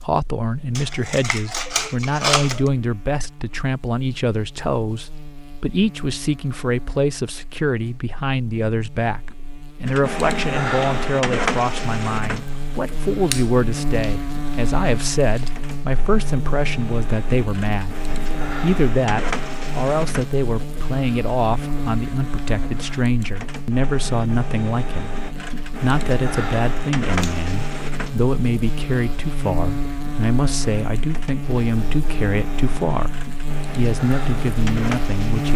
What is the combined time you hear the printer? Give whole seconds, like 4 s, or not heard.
26 s.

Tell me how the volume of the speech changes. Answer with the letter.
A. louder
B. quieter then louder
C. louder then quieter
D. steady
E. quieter
D.